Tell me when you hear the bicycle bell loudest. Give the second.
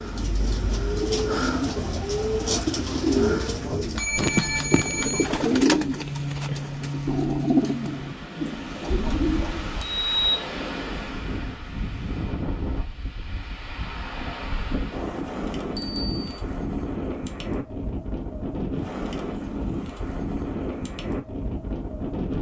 10 s.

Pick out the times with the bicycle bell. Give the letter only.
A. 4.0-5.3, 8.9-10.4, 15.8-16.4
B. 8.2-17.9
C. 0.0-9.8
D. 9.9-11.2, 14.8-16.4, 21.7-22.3
A.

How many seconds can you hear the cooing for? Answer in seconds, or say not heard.
10 s.